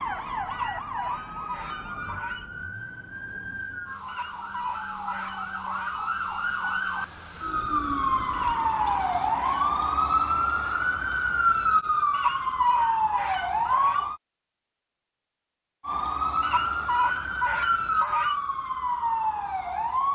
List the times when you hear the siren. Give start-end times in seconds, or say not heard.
0.0-14.2, 15.8-20.1.